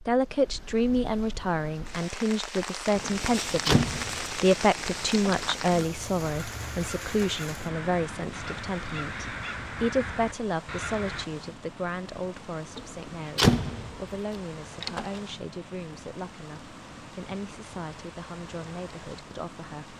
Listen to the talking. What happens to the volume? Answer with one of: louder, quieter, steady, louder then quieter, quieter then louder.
quieter.